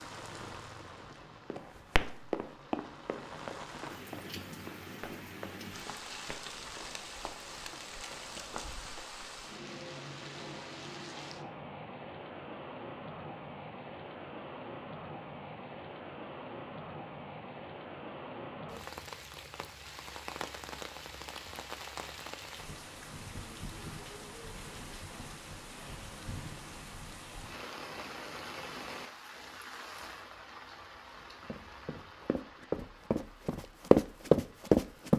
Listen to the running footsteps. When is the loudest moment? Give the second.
34 s.